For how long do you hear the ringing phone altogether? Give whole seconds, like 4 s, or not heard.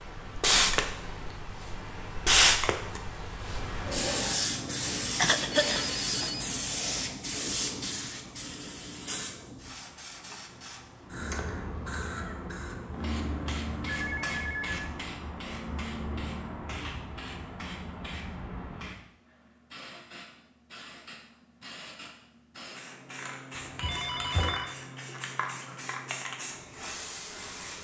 4 s.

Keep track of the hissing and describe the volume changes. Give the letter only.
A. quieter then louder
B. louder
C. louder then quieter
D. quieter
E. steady
D.